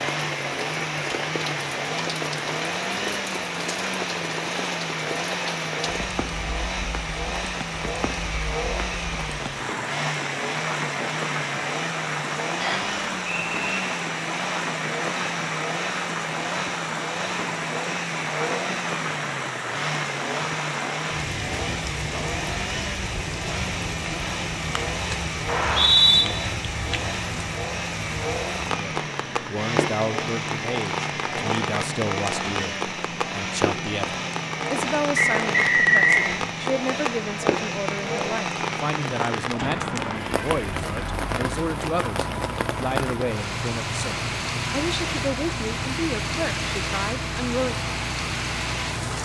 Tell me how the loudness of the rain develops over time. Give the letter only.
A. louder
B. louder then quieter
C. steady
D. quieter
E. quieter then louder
C.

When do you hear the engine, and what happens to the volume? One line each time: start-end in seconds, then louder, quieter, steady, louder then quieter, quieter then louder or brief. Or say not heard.
0.0-49.2 steady.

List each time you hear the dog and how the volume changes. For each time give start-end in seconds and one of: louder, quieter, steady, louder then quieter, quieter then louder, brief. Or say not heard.
not heard.